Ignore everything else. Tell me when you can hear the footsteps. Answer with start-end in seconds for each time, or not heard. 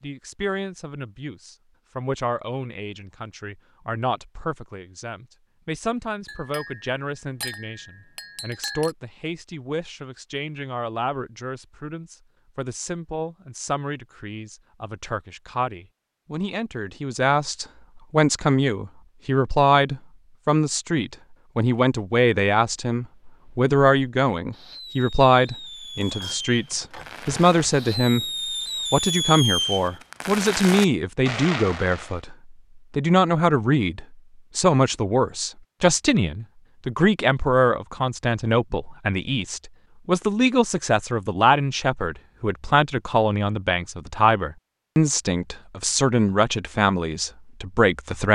not heard.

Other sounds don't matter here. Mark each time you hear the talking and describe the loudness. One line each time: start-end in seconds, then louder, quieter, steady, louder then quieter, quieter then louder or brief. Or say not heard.
0.0-28.2 louder
28.9-48.2 steady.